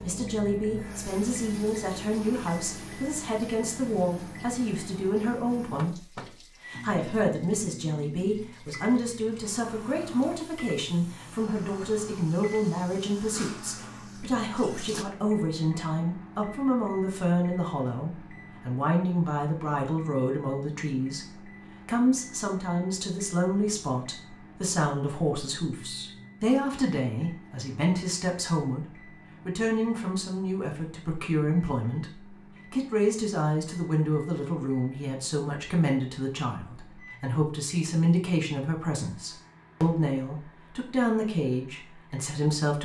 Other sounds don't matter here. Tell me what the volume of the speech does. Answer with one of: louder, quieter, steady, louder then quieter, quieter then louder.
steady.